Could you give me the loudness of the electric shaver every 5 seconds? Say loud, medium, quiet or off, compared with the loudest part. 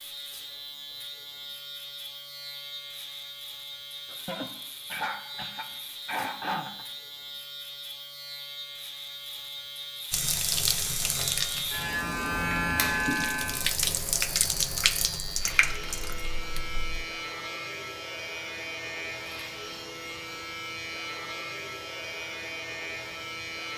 medium, medium, loud, medium, medium.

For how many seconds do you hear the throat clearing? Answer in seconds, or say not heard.
3 s.